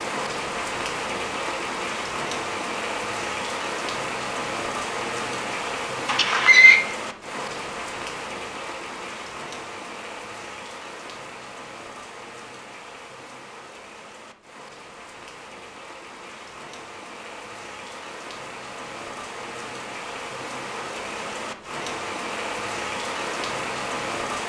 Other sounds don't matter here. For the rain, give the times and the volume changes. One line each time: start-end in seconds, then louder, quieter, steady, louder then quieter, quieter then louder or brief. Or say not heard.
0.0-24.4 quieter then louder.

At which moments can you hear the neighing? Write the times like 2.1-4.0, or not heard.
6.0-6.8.